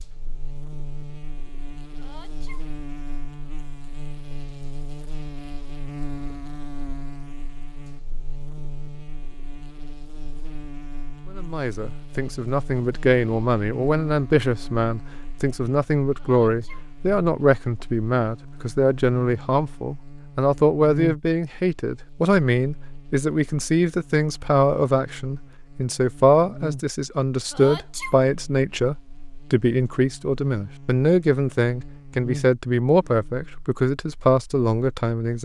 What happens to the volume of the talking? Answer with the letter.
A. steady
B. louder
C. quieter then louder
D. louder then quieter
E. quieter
A.